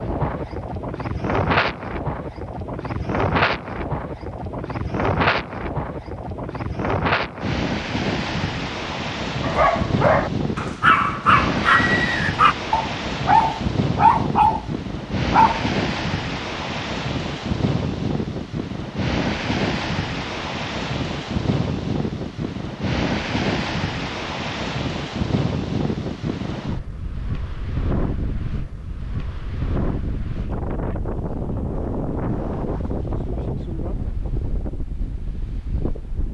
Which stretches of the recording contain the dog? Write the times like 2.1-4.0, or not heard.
9.4-15.7.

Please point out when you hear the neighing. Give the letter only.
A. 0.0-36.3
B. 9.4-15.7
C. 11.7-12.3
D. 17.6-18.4
C.